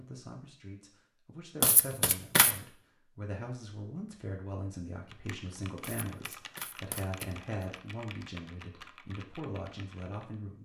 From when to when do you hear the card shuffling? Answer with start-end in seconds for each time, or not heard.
1.6-2.6, 5.8-7.3.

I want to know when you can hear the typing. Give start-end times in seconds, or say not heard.
5.1-10.3.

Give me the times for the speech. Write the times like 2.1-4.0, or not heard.
0.0-10.6.